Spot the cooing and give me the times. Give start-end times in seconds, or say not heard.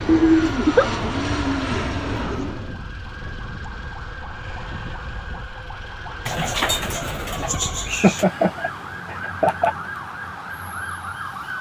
0.1-2.5, 6.2-8.2.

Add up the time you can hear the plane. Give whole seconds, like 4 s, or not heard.
3 s.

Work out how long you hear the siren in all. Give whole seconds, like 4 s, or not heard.
11 s.